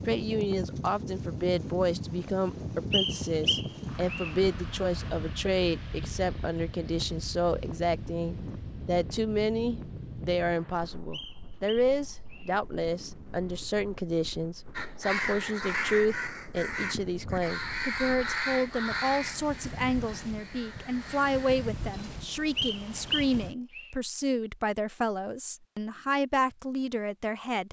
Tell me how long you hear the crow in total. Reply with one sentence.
The crow can be heard for 7 seconds in total.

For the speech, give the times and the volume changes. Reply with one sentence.
The speech can be heard from 0.1 to 27.6 s, at a steady volume.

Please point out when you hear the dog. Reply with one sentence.
The dog can't be heard in this clip.